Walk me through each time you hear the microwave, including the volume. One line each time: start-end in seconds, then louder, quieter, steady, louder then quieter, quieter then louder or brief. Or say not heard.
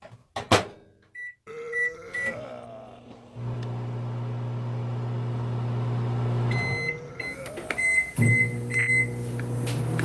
0.1-10.0 quieter then louder.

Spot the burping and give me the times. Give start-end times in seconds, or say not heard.
1.4-3.0, 6.5-8.2.